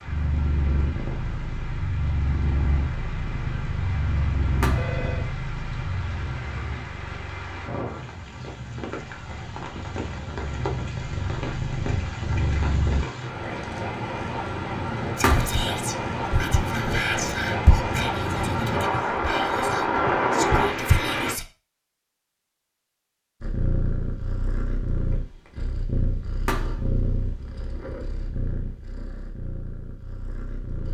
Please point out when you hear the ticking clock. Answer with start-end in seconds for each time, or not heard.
not heard.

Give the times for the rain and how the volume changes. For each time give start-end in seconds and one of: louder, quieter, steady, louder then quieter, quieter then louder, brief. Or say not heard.
0.0-21.4 louder.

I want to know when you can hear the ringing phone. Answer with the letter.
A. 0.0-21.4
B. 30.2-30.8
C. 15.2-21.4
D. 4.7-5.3
D.